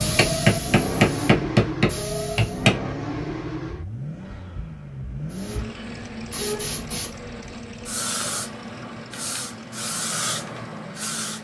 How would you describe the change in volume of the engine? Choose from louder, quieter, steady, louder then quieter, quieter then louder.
quieter.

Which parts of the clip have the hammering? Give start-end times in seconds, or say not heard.
0.0-2.8.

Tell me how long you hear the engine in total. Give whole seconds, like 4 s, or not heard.
11 s.